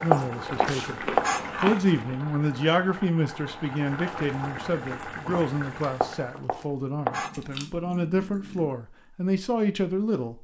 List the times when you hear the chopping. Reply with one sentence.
The chopping can be heard from 0.1 to 1.8 s and from 6.0 to 7.4 s.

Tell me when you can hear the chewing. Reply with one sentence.
The chewing can be heard from 0.6 to 2.2 s and from 7.1 to 8.7 s.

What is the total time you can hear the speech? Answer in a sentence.
The speech can be heard for 10 seconds in total.